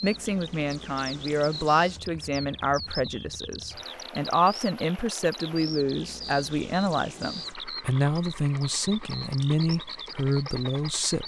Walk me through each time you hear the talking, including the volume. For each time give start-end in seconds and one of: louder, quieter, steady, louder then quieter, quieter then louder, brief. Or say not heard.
0.0-11.2 steady.